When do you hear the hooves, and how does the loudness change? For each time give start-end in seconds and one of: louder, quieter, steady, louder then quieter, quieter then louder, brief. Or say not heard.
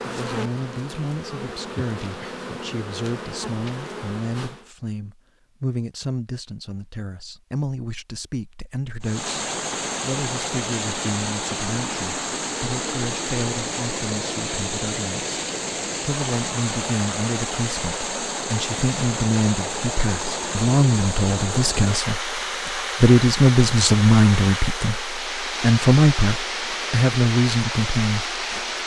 not heard.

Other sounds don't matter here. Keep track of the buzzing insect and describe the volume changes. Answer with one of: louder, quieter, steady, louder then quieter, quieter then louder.
steady.